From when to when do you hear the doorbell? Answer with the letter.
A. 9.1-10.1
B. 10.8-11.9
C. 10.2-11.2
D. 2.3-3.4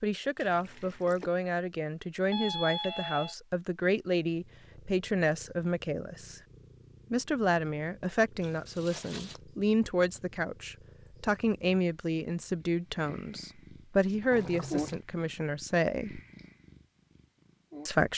D.